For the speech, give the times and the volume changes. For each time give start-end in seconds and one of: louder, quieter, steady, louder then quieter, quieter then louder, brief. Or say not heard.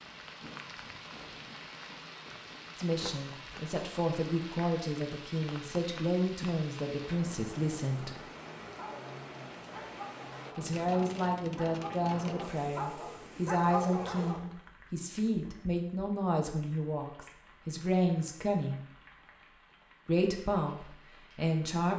2.8-8.2 steady
10.6-18.8 steady
20.1-21.9 brief.